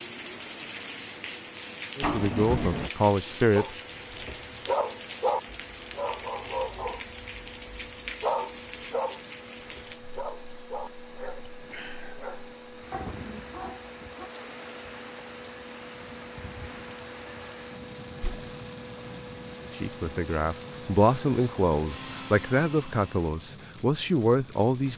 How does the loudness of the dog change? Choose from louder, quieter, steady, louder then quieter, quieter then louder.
quieter.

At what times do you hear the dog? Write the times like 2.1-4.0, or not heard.
3.5-14.3.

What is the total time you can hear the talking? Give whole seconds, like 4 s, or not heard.
7 s.